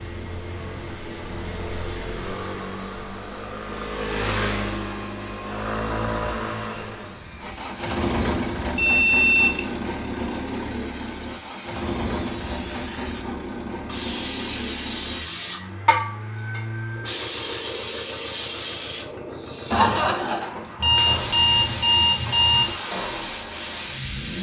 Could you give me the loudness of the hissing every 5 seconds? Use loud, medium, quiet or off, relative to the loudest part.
quiet, quiet, medium, loud, loud.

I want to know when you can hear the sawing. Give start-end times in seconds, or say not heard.
not heard.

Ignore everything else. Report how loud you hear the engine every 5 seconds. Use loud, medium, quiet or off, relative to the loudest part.
loud, loud, loud, medium, medium.